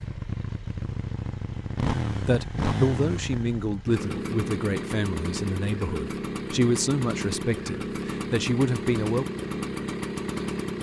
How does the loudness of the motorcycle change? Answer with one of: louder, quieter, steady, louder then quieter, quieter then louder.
steady.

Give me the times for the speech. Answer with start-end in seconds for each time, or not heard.
2.2-9.2.